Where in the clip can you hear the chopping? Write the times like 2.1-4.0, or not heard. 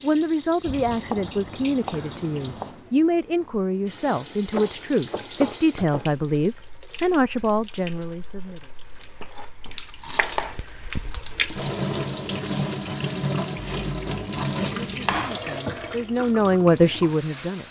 0.6-2.9, 4.5-6.1, 9.2-10.6, 13.6-15.3.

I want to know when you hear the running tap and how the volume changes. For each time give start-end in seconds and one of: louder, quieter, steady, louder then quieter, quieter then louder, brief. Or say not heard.
0.0-17.6 louder.